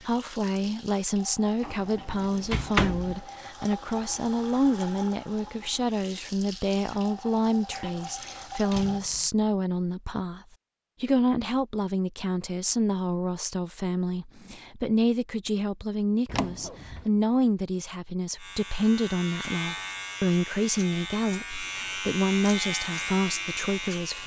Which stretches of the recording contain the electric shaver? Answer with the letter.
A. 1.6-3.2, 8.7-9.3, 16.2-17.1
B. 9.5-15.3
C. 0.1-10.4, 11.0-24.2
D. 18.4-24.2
D.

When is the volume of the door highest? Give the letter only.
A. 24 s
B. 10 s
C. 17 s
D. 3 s
D.